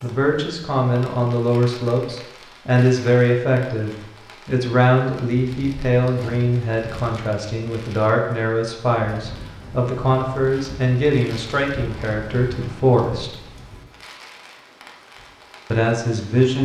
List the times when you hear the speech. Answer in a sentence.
You can hear the speech from 0.0 to 13.3 s and from 15.7 to 16.6 s.